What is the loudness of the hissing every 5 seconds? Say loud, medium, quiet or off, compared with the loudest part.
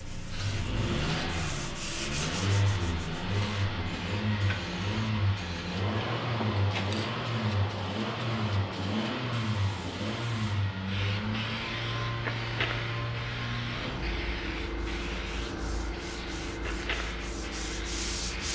medium, loud, loud, loud.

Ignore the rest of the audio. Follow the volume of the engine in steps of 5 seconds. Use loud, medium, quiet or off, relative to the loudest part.
loud, loud, loud, medium.